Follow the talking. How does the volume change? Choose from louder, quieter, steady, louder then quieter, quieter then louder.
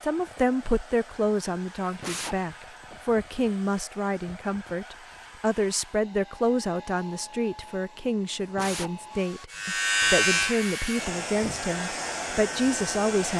steady.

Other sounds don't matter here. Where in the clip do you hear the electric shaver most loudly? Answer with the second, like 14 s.
10 s.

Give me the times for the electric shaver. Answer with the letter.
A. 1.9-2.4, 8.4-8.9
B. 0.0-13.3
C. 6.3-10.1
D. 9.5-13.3
D.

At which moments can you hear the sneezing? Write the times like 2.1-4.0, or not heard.
1.9-2.4, 8.4-8.9.